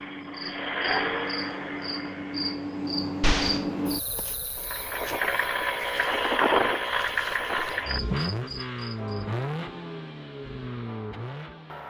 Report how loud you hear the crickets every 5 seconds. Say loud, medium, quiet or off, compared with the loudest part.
loud, medium, off.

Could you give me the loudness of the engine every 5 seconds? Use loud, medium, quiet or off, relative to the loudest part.
medium, loud, medium.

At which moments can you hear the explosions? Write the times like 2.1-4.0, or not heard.
3.2-3.6.